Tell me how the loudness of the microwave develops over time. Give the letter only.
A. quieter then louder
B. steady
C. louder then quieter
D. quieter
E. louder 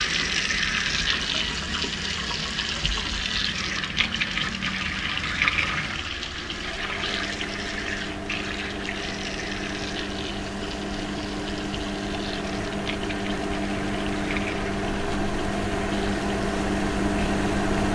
E.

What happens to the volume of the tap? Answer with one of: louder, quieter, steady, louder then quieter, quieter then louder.
quieter.